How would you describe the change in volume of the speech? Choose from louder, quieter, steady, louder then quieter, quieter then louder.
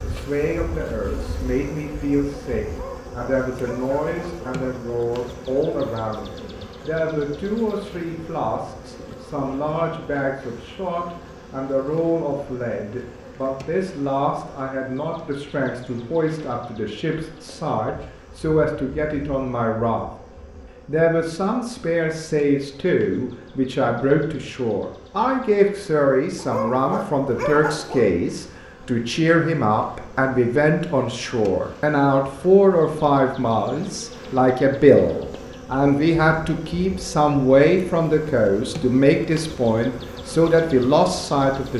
louder.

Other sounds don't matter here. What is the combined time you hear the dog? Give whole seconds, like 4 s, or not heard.
4 s.